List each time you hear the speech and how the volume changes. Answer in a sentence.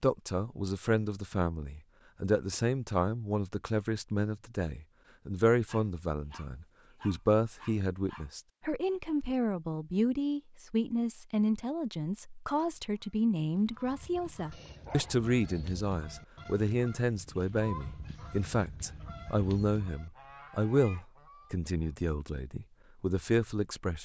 The speech can be heard from 0.0 to 23.9 s, at a steady volume.